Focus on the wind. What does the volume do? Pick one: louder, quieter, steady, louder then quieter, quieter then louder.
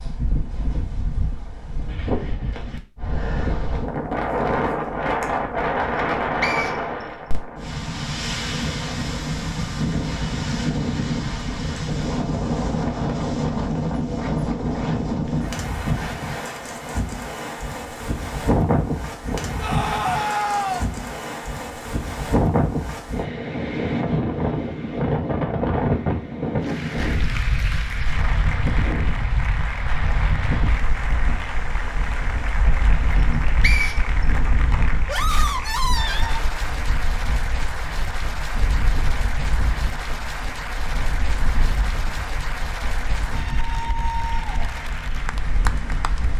quieter.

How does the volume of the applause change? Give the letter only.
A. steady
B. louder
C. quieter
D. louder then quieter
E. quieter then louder
A.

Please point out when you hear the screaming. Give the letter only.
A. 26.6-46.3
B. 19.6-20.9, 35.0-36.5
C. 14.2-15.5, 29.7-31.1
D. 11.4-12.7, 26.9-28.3
B.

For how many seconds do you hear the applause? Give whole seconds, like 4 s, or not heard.
20 s.